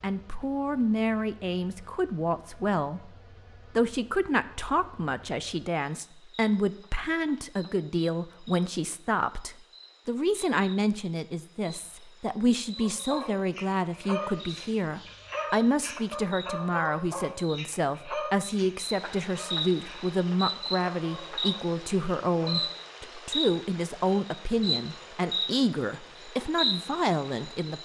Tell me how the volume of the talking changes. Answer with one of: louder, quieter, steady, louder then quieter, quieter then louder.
steady.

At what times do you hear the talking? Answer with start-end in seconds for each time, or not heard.
0.0-3.1, 3.8-27.7.